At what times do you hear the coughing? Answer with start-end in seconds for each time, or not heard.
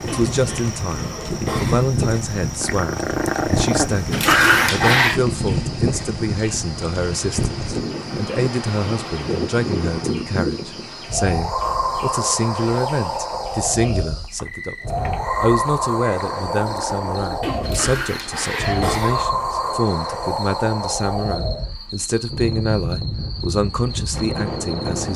0.1-1.9, 17.4-19.2.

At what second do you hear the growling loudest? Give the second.
4 s.